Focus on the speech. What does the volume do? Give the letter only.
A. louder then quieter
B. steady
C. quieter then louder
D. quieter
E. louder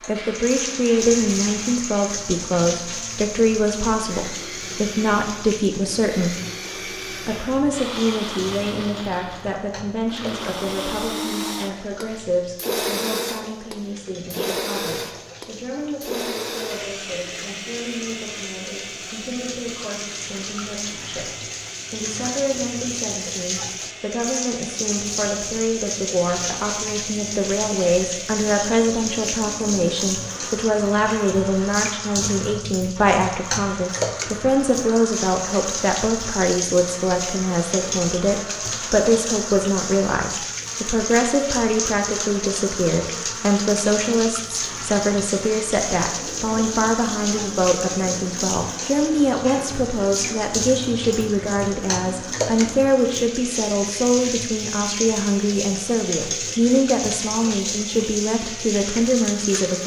C.